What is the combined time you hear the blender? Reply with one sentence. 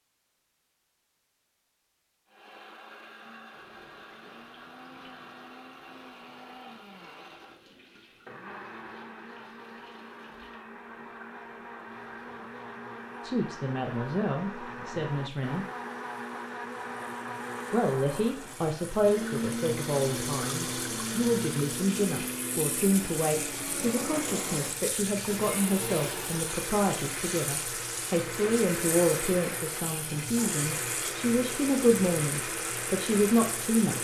The blender can be heard for 32 seconds in total.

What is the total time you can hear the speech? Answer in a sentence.
You can hear the speech for 19 seconds altogether.